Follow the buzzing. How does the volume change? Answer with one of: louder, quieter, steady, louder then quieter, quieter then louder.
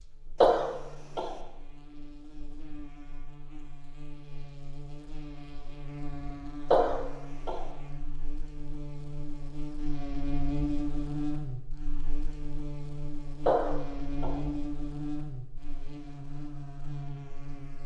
louder.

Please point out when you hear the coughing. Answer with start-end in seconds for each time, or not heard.
0.4-1.3, 6.7-7.6, 13.4-14.3.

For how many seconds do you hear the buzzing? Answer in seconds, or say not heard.
18 s.